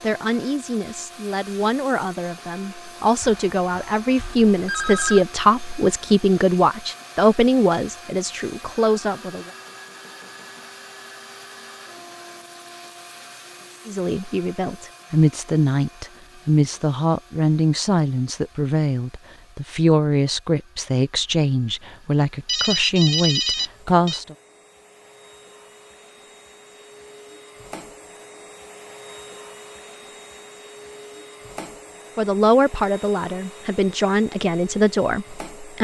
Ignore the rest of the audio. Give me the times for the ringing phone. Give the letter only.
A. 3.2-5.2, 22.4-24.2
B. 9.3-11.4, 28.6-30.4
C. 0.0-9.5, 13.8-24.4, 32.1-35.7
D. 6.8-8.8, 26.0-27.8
A.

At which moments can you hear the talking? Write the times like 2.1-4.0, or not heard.
0.0-9.5, 13.8-24.4, 32.1-35.7.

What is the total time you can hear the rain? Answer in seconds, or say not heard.
not heard.